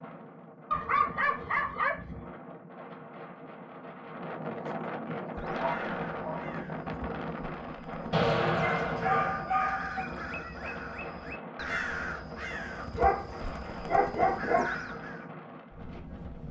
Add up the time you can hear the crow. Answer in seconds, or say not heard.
10 s.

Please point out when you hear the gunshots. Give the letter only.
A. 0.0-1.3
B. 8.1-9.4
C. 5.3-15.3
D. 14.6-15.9
B.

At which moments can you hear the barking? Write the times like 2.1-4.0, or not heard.
0.7-2.4, 5.5-6.5, 8.6-10.1, 12.8-13.2, 13.8-14.8.